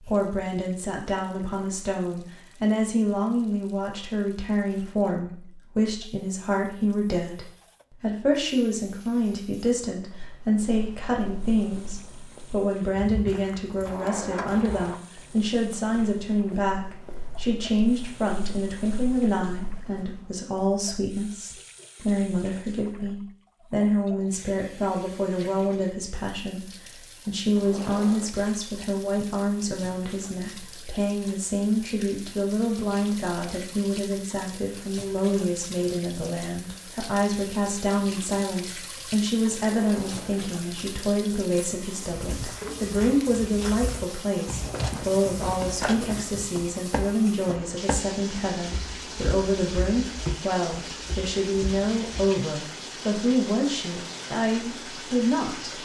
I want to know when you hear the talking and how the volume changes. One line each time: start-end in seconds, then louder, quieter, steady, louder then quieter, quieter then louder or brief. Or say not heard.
0.0-55.8 steady.